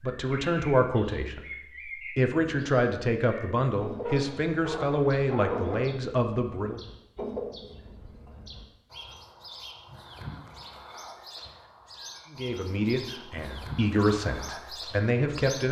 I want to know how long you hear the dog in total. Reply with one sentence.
You can hear the dog for 2 seconds altogether.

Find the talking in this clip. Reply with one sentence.
The talking can be heard from 0.0 to 6.8 s and from 12.3 to 15.6 s.